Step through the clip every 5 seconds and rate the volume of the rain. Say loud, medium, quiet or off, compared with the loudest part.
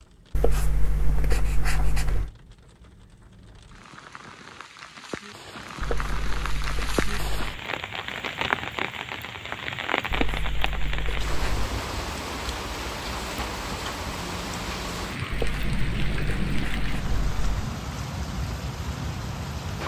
quiet, loud, loud, loud.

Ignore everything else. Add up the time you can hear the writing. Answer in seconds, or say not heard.
8 s.